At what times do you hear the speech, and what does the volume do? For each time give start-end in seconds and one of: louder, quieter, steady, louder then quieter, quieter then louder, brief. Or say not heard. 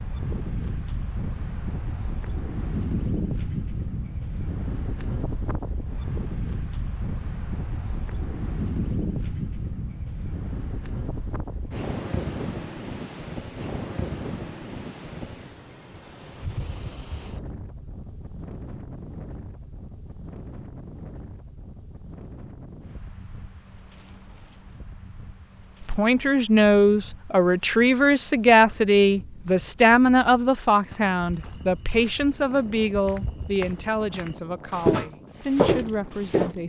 25.8-36.6 quieter.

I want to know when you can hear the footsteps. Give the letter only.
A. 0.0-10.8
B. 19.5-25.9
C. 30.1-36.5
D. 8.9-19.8
C.